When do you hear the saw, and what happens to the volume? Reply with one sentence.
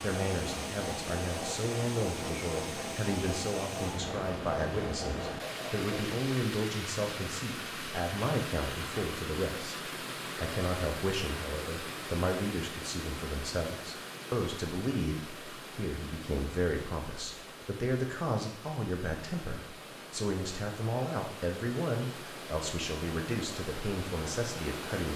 The saw can be heard from 0.0 to 6.1 s, at a steady volume.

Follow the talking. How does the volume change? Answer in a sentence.
The volume of the talking stays about the same.